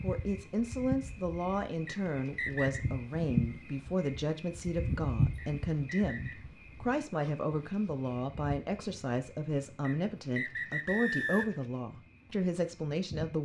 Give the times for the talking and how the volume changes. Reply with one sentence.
The talking can be heard from 0.0 to 13.4 s, at a steady volume.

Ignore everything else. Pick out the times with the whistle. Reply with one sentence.
The whistle can be heard from 1.9 to 2.9 s, from 5.3 to 6.5 s and from 9.8 to 11.7 s.